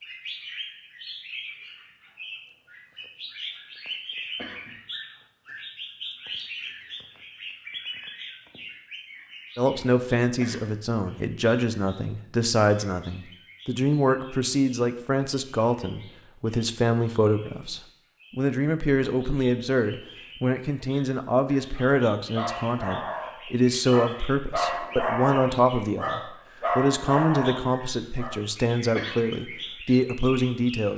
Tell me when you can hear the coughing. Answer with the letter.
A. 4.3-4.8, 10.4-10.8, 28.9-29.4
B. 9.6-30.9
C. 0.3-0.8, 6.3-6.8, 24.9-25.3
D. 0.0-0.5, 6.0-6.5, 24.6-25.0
A.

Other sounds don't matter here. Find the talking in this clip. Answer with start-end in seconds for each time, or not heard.
9.6-30.9.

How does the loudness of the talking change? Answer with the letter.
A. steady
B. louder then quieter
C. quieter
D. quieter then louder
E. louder
A.